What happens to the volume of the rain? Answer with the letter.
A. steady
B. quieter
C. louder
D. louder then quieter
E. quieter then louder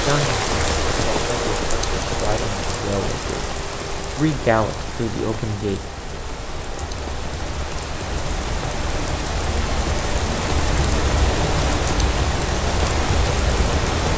E.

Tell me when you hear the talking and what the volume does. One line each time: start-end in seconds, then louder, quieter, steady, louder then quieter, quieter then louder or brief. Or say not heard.
0.1-5.8 louder.